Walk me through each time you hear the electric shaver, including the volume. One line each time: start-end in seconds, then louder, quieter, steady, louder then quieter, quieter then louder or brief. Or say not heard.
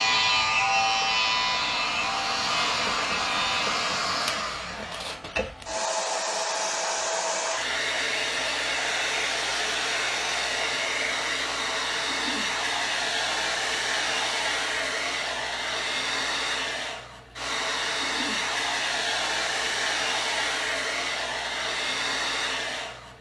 0.0-4.0 quieter.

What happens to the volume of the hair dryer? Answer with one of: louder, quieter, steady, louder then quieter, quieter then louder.
steady.